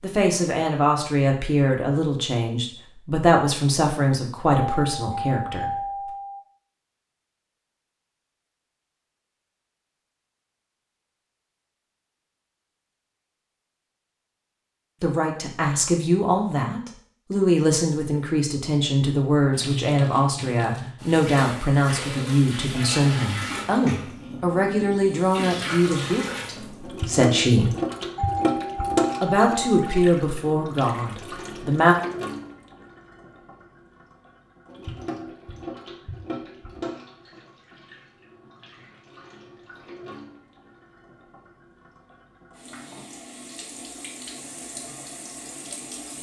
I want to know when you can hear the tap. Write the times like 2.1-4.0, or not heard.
19.5-46.1.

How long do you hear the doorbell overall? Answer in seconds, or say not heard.
4 s.